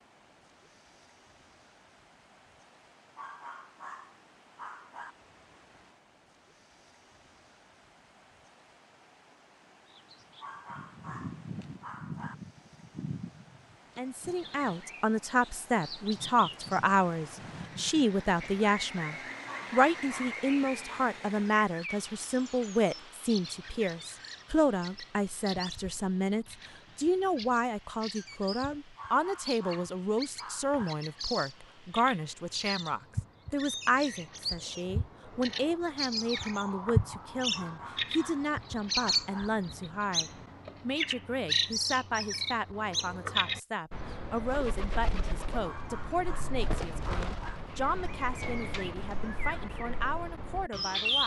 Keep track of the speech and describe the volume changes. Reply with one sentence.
The loudness of the speech goes down.